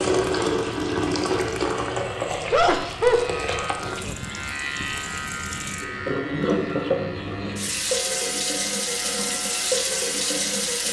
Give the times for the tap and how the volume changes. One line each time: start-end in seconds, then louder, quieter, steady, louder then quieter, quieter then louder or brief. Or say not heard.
0.0-10.8 quieter then louder.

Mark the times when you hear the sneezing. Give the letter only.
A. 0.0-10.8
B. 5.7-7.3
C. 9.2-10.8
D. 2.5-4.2
D.